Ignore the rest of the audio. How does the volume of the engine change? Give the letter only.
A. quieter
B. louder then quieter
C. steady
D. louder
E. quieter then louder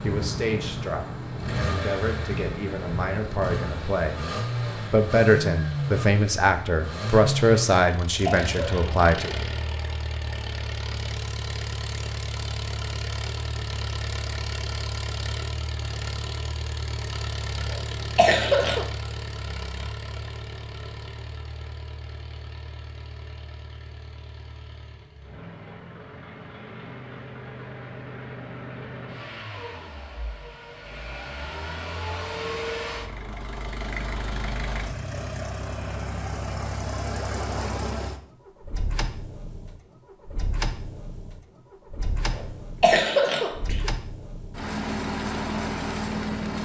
E.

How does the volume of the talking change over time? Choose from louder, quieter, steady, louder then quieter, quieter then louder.
louder.